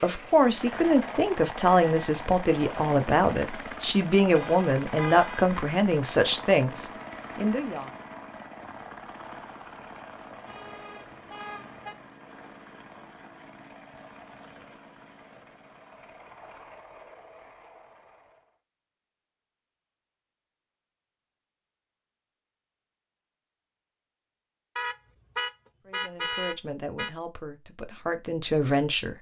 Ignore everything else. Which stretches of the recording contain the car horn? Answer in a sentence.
The car horn can be heard from 4.3 to 5.5 s, from 10.4 to 11.9 s and from 24.8 to 27.1 s.